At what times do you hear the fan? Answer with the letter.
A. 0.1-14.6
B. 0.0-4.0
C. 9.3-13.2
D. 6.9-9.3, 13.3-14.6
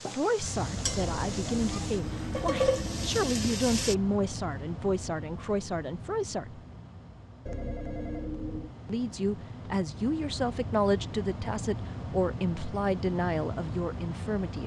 A.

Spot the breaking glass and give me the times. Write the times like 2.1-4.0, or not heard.
not heard.